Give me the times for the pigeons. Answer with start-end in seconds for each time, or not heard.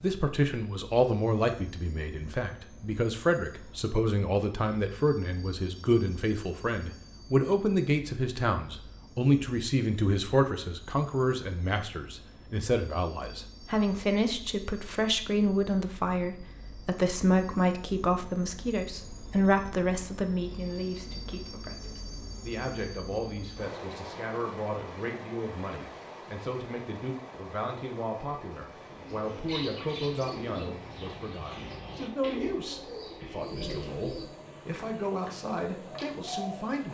28.9-36.7.